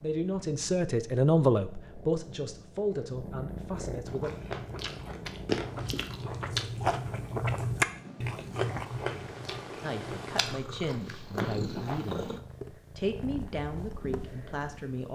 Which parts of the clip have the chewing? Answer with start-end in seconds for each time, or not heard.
4.0-12.1.